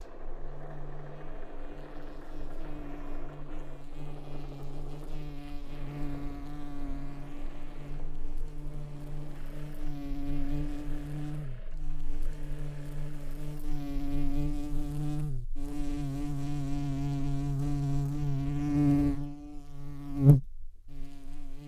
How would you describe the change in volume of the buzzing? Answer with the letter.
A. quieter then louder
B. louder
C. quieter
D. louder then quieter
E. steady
B.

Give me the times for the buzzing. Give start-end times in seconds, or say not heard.
0.0-21.6.